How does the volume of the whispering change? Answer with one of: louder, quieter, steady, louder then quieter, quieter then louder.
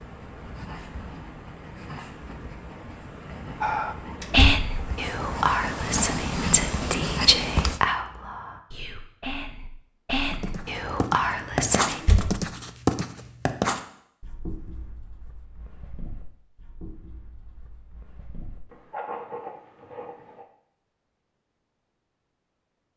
quieter then louder.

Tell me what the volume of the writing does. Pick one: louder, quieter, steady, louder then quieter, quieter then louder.
louder then quieter.